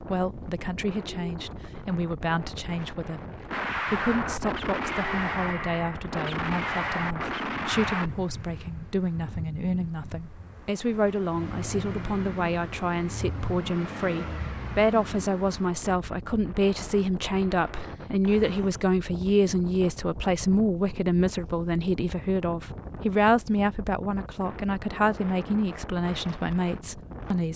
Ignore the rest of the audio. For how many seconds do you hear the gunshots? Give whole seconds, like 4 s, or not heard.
5 s.